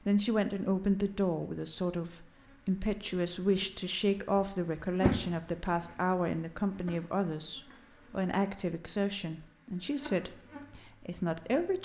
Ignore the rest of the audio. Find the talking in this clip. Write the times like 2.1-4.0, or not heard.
0.1-11.8.